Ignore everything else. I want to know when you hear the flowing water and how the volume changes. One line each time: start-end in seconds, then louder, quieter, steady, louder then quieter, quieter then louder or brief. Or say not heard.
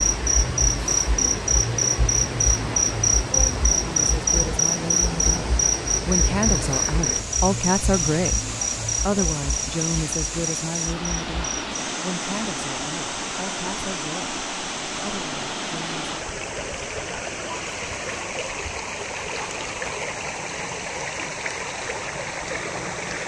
0.0-23.2 steady.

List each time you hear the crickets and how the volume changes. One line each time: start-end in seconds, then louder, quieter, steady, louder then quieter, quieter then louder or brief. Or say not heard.
0.0-23.2 quieter.